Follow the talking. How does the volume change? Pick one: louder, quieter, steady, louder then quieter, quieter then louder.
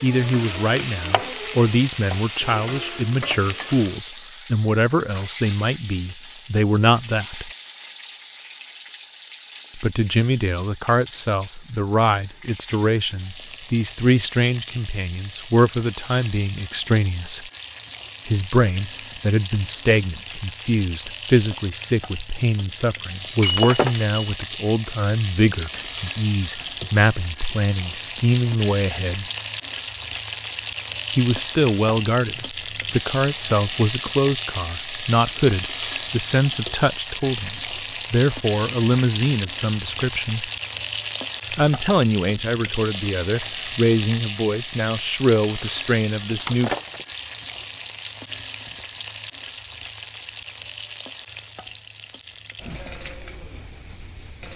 steady.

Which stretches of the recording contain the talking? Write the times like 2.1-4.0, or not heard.
0.0-7.5, 9.8-17.4, 18.2-29.2, 31.1-40.5, 41.5-46.7.